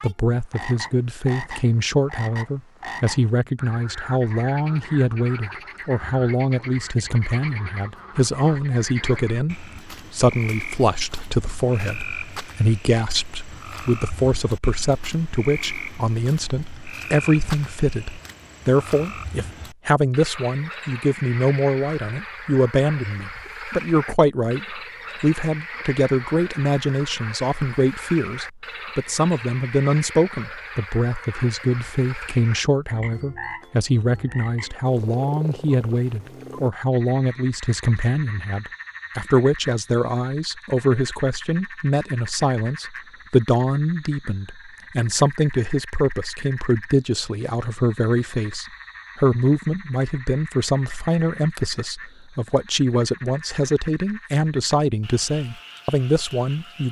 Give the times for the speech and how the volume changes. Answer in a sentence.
The speech can be heard from 0.0 to 56.8 s, at a steady volume.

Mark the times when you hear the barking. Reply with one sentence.
The barking can't be heard in this clip.